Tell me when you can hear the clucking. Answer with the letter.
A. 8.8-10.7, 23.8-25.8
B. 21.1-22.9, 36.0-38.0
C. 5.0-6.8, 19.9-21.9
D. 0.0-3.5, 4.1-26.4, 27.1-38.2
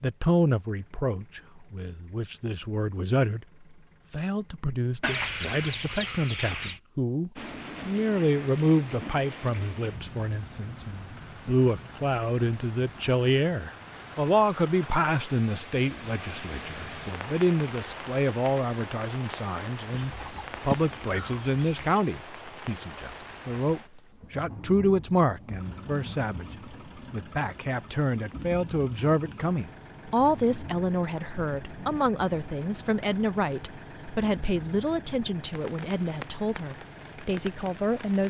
C.